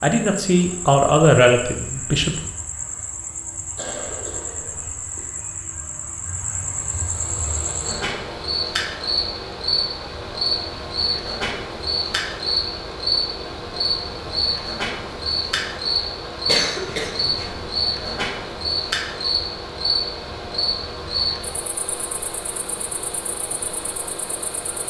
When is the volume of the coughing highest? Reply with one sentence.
The volume of the coughing peaks at 17 seconds.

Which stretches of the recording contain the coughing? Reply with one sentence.
The coughing can be heard from 3.8 to 5.3 s and from 16.4 to 17.6 s.